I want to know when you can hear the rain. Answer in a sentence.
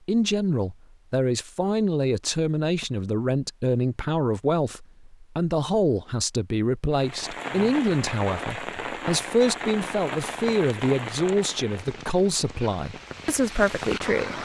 You can hear the rain from 6.9 to 14.4 s.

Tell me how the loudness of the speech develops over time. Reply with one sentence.
The volume of the speech stays about the same.